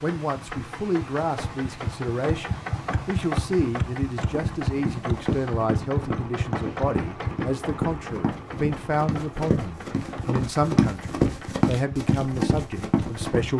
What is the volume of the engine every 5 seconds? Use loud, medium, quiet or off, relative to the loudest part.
loud, loud, medium.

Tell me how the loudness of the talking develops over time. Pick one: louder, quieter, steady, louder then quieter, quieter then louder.
steady.